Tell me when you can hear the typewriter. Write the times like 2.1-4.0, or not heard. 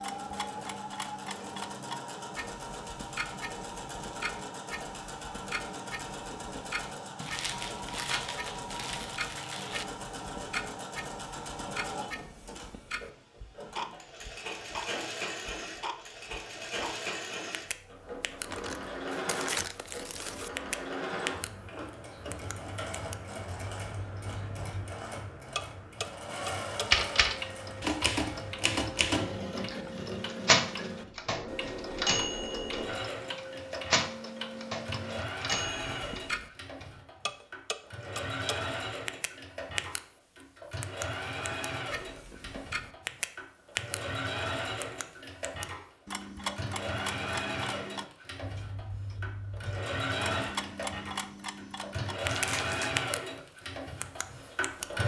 26.9-36.9.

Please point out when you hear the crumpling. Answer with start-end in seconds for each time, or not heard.
7.2-9.8, 18.4-20.5, 52.2-53.0.